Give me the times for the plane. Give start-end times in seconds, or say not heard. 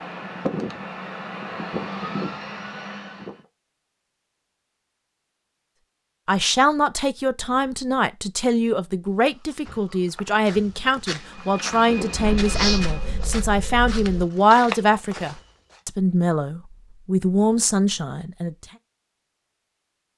0.0-3.4, 11.2-13.2.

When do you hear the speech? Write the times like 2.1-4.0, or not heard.
6.2-18.6.